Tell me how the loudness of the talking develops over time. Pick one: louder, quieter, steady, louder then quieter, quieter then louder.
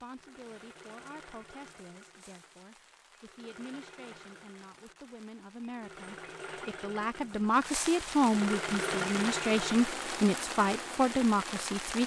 louder.